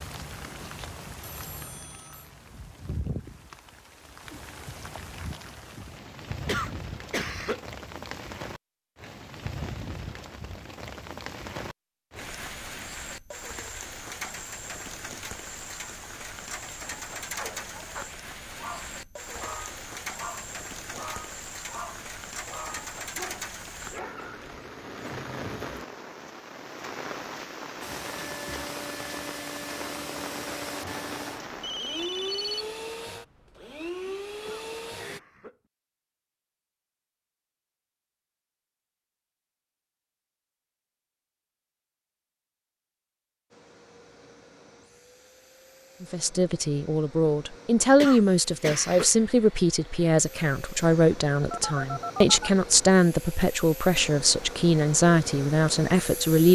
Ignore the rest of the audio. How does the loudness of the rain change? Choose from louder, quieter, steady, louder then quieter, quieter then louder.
steady.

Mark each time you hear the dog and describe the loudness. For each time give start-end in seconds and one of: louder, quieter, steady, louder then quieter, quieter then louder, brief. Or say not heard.
17.3-24.4 steady.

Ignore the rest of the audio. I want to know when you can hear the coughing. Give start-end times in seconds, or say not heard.
6.5-7.6, 34.5-35.6, 48.0-49.1.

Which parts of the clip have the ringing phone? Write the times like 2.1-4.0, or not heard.
1.2-2.3, 31.6-32.6, 51.5-52.5.